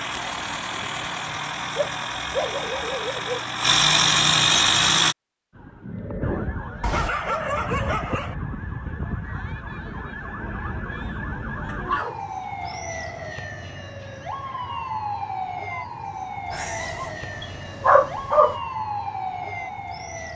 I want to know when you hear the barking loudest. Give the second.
18 s.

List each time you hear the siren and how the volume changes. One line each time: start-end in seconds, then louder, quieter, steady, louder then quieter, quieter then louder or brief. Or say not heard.
5.5-20.3 steady.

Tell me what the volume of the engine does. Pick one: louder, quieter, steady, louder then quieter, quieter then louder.
louder.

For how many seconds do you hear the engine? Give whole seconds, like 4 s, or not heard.
5 s.